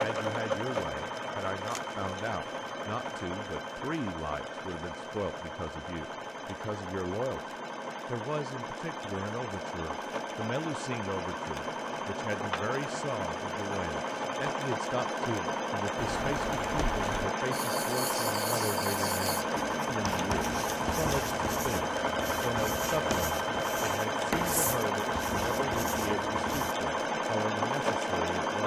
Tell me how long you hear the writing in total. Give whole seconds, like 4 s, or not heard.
11 s.